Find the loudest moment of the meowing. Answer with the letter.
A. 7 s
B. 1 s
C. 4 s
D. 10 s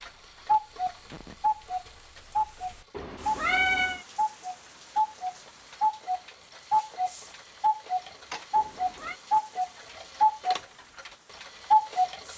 C.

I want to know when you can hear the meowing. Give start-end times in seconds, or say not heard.
2.9-4.0, 8.6-9.2.